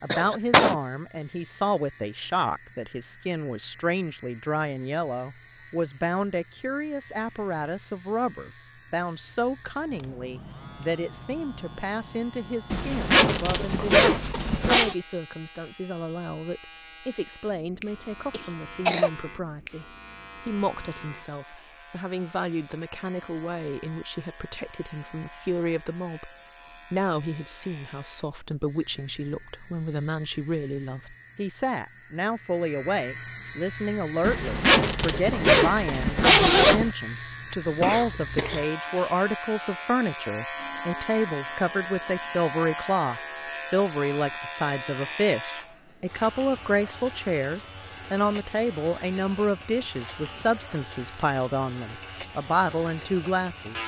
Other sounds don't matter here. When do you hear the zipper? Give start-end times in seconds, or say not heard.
12.7-14.9, 34.2-36.9.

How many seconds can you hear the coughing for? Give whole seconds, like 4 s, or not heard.
3 s.